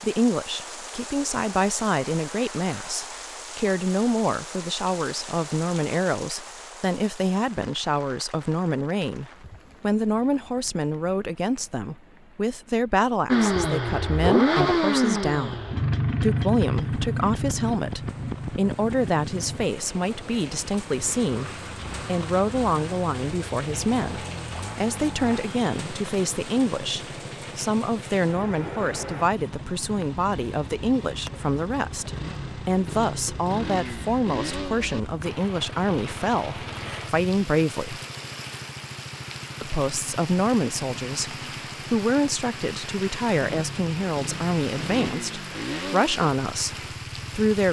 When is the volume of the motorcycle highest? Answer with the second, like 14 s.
15 s.